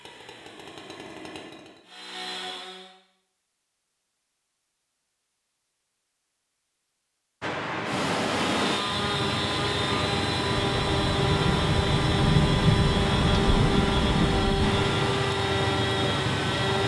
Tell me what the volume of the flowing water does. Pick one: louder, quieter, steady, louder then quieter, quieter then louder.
steady.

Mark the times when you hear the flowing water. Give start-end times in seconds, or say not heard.
7.4-16.8.